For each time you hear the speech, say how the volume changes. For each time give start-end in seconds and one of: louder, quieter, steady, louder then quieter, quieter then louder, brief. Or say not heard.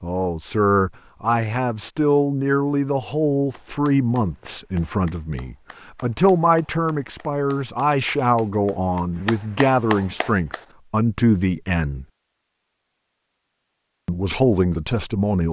0.0-12.1 steady
14.1-15.4 brief.